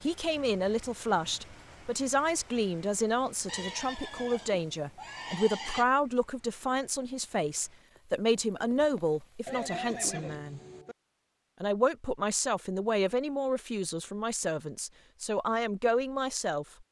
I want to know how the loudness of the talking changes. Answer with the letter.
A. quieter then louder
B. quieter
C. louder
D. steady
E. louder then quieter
D.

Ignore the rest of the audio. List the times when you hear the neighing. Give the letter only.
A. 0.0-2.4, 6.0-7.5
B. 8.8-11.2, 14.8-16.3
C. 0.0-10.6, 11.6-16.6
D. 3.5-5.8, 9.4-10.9
D.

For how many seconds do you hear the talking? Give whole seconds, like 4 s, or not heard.
16 s.